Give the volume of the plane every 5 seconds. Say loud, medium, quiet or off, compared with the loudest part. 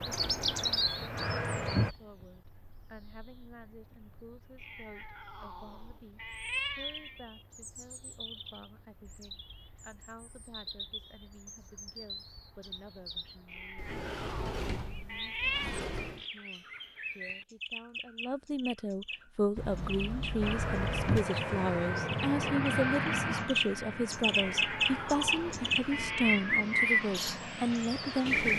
loud, off, off, off, loud, medium.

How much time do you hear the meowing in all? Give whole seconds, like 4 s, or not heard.
7 s.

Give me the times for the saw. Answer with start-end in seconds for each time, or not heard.
not heard.